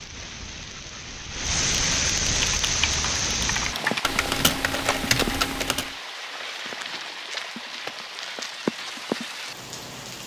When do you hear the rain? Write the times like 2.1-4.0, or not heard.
0.0-10.2.